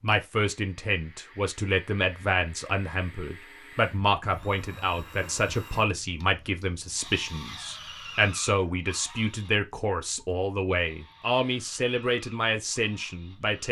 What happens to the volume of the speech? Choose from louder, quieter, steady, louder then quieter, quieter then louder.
steady.